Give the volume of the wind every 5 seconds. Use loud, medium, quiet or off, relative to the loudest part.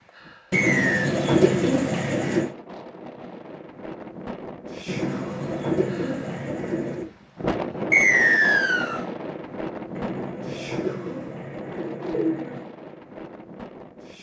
medium, loud, medium.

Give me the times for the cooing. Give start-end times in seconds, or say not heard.
0.5-2.5, 4.8-7.1, 9.9-12.7.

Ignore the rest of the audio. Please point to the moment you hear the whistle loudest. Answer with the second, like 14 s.
8 s.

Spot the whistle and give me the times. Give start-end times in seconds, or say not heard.
0.5-1.1, 7.9-9.1.